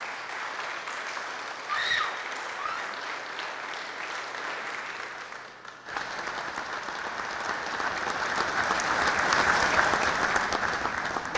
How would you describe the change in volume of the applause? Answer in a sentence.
The loudness of the applause goes up.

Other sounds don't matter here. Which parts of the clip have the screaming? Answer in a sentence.
The screaming can be heard from 1.6 to 2.9 s.